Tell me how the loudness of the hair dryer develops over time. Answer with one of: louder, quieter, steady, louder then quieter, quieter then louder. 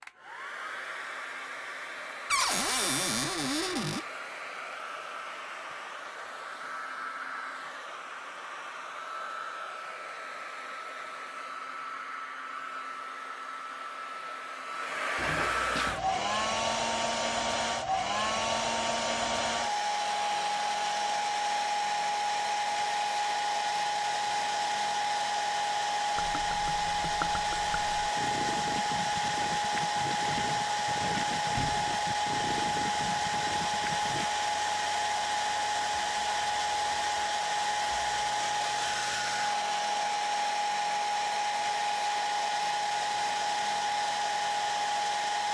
louder.